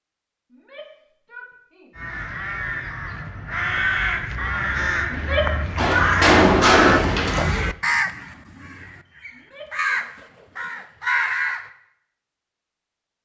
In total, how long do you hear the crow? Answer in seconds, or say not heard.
10 s.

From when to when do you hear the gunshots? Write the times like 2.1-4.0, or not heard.
5.8-7.3.